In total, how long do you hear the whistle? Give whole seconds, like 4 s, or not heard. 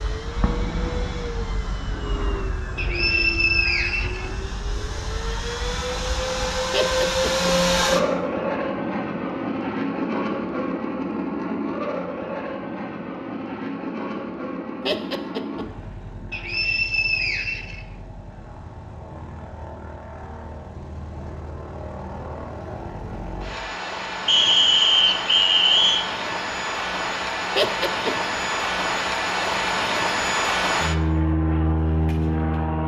5 s.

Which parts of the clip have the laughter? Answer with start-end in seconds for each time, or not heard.
6.7-7.5, 14.8-15.7, 27.6-28.1.